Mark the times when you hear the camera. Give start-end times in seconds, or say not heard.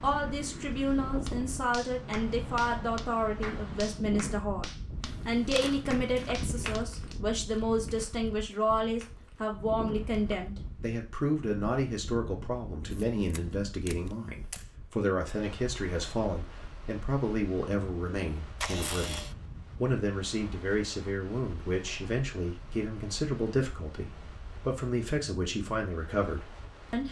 5.0-6.5, 12.9-14.7, 18.6-19.4.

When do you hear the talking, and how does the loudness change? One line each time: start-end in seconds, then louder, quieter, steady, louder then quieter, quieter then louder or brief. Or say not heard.
0.0-27.0 steady.